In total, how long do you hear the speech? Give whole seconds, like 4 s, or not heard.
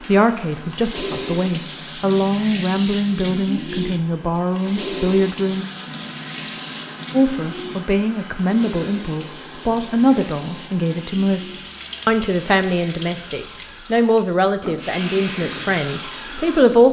15 s.